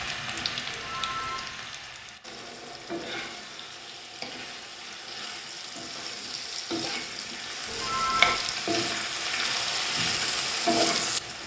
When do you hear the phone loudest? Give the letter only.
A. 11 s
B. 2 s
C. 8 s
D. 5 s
C.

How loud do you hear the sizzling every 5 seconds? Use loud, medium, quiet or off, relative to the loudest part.
medium, loud, loud.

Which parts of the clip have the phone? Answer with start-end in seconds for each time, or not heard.
0.7-1.5, 7.7-8.3.